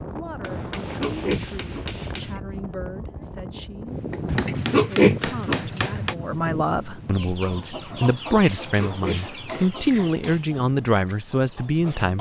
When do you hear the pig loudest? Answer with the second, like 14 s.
5 s.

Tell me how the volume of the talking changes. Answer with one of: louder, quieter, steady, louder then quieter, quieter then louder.
louder.